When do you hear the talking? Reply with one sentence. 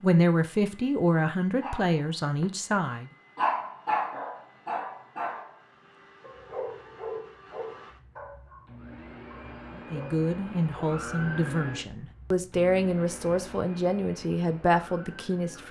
You can hear the talking from 0.0 to 3.0 s and from 9.9 to 15.6 s.